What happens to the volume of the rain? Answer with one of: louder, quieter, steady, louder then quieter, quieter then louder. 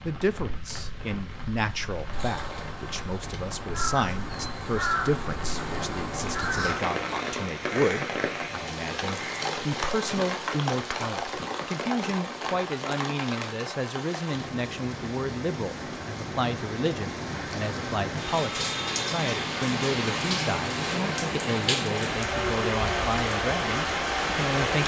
louder.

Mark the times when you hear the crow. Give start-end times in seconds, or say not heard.
2.1-9.8.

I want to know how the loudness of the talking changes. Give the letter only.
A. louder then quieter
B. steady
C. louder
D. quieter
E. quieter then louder
B.